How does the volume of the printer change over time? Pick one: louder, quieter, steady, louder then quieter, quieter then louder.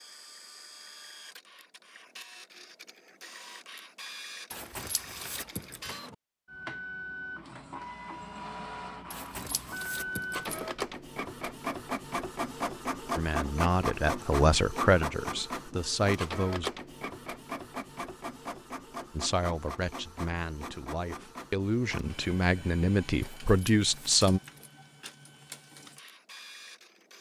louder then quieter.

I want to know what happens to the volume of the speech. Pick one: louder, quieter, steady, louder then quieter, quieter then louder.
quieter then louder.